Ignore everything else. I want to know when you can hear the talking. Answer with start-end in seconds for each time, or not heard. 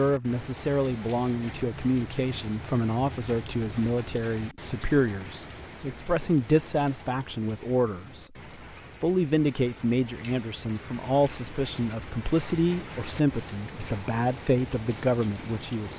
0.0-8.2, 9.0-15.9.